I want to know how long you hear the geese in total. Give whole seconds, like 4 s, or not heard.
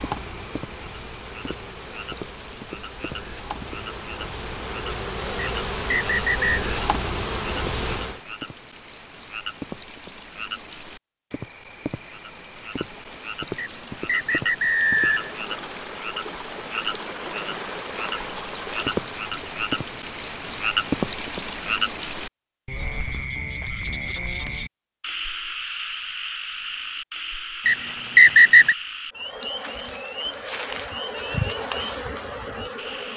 not heard.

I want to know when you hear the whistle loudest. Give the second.
28 s.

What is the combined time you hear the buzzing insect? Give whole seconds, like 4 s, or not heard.
12 s.